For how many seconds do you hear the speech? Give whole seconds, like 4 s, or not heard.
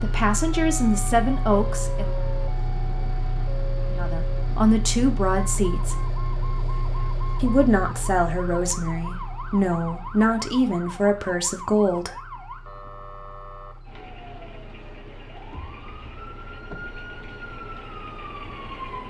9 s.